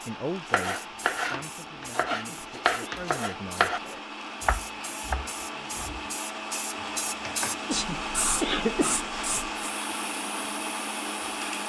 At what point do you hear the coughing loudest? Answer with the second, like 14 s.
9 s.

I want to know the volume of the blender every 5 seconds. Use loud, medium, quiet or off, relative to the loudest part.
medium, loud, loud.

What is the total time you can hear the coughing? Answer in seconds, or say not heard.
2 s.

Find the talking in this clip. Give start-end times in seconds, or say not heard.
0.1-3.7.